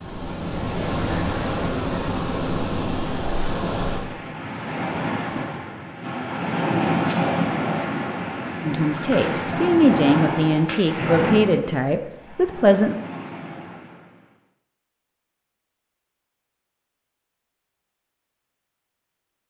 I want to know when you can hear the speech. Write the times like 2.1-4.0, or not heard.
8.6-12.9.